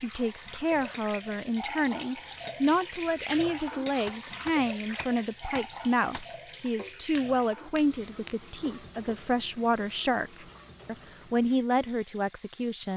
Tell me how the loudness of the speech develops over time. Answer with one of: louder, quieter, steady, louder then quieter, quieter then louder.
steady.